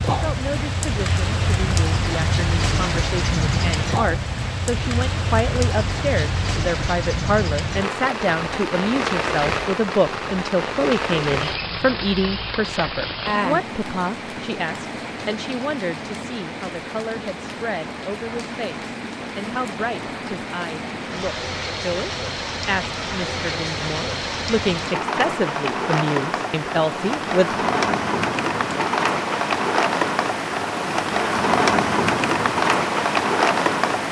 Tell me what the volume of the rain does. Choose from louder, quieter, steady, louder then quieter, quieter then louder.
quieter then louder.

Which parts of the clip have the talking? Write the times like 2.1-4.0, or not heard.
0.1-27.5.